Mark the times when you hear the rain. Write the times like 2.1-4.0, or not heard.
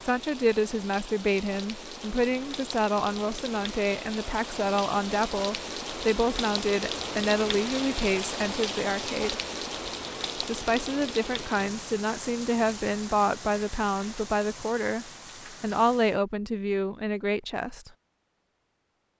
0.0-16.2.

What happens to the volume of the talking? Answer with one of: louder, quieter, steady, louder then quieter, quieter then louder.
steady.